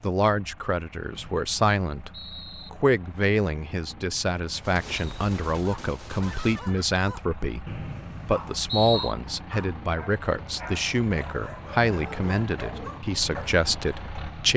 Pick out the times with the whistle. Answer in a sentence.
You can hear the whistle from 1.1 to 2.7 s and from 7.7 to 9.2 s.